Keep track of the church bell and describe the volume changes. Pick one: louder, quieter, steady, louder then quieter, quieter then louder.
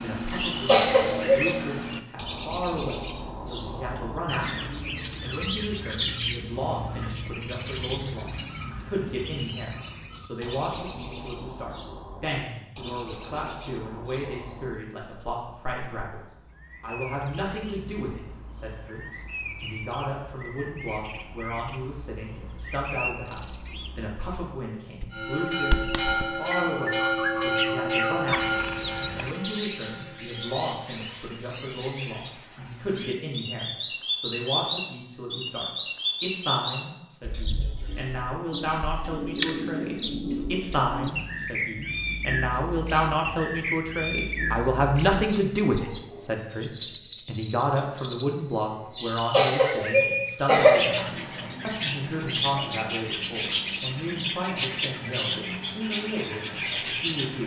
quieter.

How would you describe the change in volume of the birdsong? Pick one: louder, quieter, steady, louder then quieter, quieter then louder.
quieter then louder.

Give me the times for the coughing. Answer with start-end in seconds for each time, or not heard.
0.3-1.4, 49.0-50.7.